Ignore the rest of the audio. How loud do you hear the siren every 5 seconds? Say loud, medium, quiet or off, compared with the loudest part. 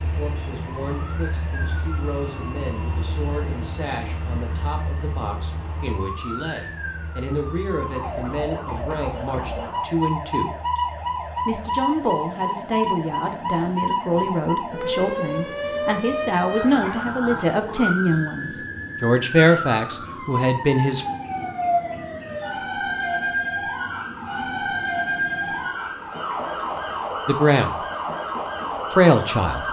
quiet, medium, loud, loud, loud, loud.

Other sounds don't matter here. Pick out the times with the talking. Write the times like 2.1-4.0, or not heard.
0.0-10.6, 11.4-21.1, 27.2-27.8, 28.9-29.6.